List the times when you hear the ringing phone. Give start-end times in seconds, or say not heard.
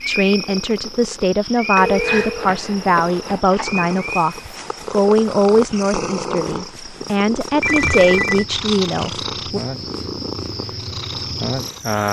1.8-3.4, 7.6-8.4.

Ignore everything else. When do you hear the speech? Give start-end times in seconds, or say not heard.
0.1-9.6.